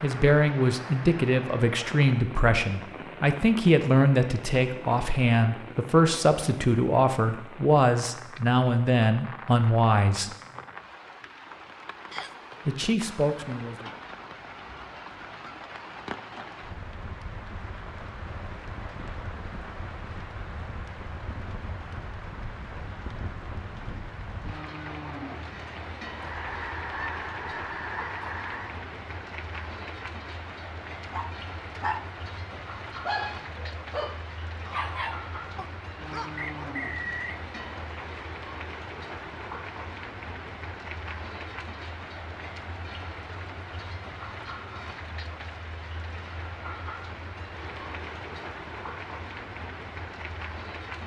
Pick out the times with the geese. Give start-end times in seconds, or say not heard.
26.1-28.8.